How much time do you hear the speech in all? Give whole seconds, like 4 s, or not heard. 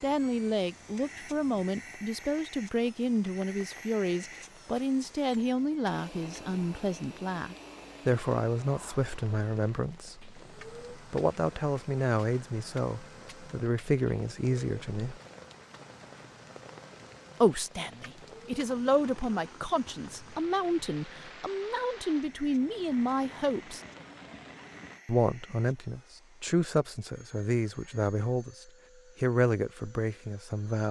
27 s.